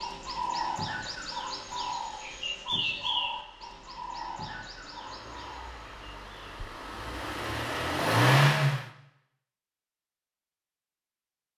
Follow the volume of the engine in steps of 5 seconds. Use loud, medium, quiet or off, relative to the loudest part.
quiet, loud, off.